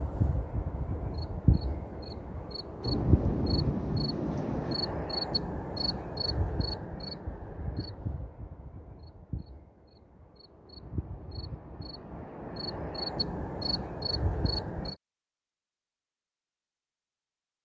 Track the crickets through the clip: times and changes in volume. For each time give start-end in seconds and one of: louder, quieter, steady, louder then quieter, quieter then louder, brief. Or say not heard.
0.0-14.9 quieter then louder.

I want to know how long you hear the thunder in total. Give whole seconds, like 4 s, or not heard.
2 s.